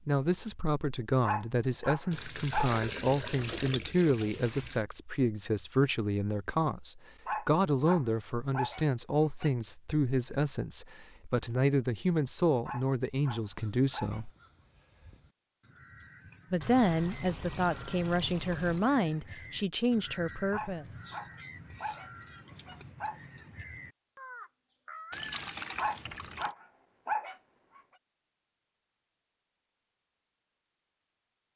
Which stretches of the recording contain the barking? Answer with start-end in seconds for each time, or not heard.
1.2-2.8, 7.2-9.5, 12.7-14.2, 20.5-23.2, 25.8-27.8.